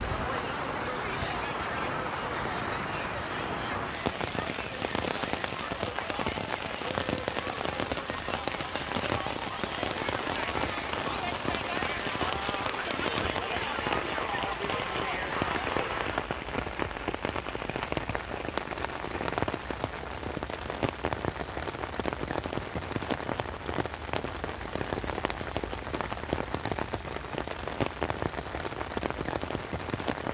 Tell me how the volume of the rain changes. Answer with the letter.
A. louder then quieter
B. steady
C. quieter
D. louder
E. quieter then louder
B.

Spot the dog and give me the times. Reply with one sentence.
You can't hear the dog here.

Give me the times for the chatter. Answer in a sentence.
You can hear the chatter from 0.0 to 16.2 s.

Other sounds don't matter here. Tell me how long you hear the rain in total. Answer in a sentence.
You can hear the rain for 30 seconds altogether.